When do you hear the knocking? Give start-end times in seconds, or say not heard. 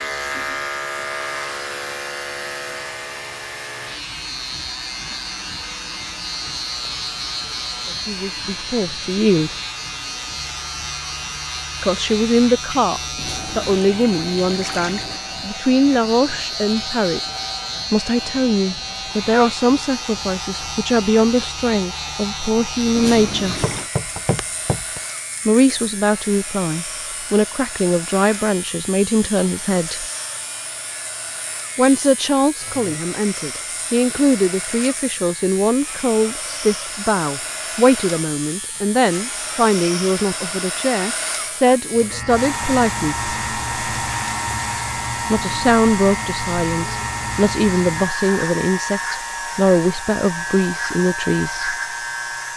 23.6-25.0.